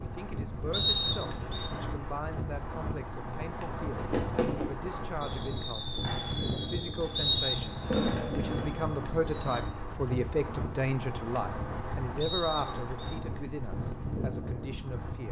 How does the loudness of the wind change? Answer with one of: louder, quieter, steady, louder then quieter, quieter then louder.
steady.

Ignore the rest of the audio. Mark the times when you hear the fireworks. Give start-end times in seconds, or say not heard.
3.9-9.6.